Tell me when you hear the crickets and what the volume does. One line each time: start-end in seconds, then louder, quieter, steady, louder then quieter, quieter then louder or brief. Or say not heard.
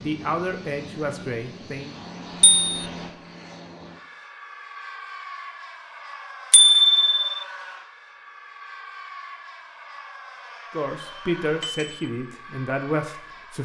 not heard.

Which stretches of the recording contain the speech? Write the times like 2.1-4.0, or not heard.
0.0-1.9, 10.7-13.6.